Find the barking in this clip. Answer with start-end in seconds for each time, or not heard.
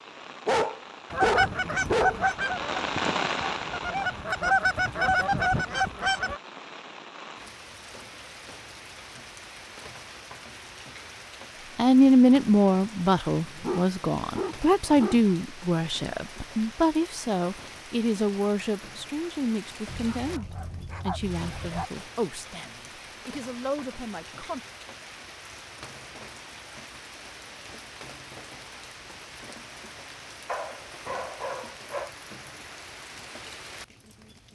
0.5-2.2, 13.3-15.2, 19.9-21.9, 30.4-32.1.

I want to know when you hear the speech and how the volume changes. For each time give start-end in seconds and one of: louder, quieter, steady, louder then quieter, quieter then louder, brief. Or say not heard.
11.8-24.6 quieter.